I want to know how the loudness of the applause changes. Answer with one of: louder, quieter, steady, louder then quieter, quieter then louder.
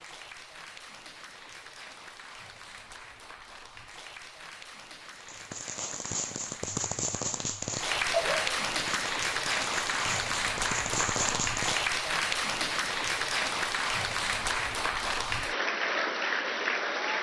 louder.